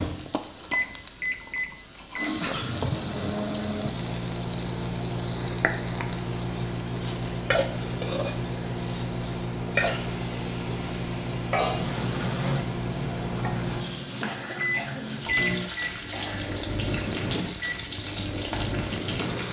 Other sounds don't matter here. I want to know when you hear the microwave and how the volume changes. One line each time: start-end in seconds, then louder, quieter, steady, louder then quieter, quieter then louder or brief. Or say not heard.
0.0-19.4 steady.